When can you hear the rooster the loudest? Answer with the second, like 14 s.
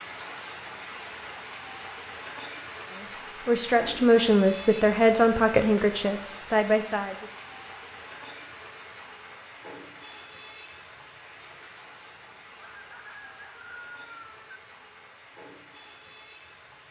14 s.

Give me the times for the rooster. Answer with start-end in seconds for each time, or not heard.
12.6-14.4.